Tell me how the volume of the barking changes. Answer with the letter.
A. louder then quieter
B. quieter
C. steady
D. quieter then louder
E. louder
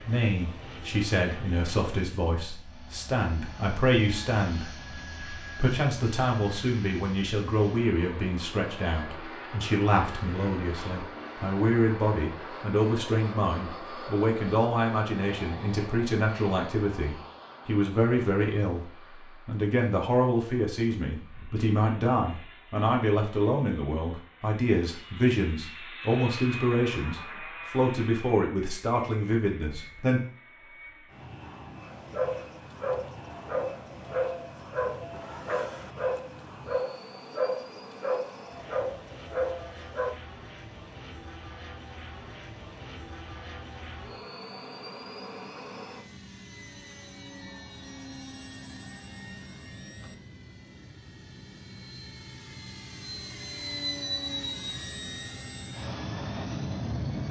C.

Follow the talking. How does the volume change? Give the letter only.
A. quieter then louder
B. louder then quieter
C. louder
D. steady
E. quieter
D.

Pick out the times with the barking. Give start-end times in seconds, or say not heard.
31.9-40.2.